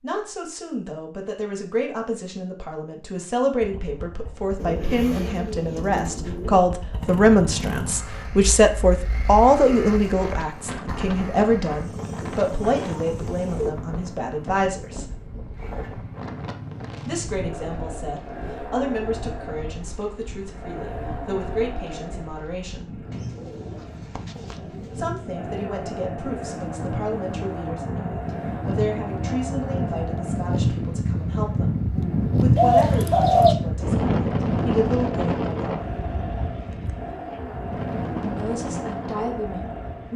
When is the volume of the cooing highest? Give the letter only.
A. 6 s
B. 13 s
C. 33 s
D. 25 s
C.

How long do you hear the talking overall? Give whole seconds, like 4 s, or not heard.
34 s.